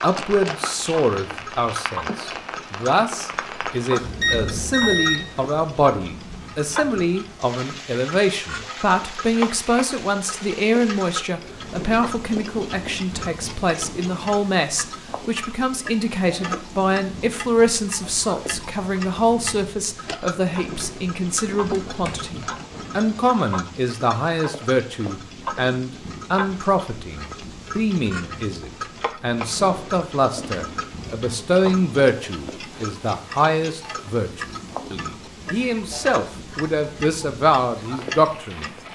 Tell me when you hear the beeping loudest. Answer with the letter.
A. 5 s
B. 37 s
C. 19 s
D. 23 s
A.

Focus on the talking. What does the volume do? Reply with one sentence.
The loudness of the talking stays about the same.